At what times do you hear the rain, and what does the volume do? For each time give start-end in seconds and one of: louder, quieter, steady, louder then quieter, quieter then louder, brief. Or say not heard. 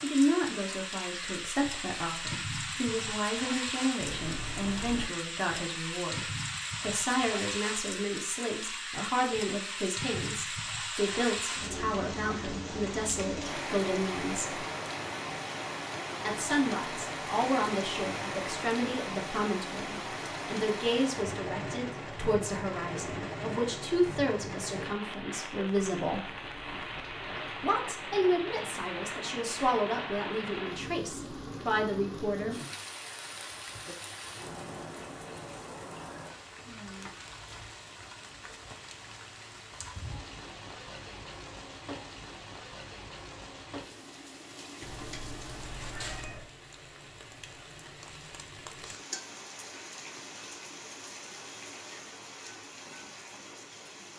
0.0-54.1 quieter.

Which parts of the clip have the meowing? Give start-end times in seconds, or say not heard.
4.0-5.1, 25.6-27.6, 44.8-46.5.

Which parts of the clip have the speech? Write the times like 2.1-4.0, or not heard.
0.0-14.6, 16.2-26.2, 27.6-32.6.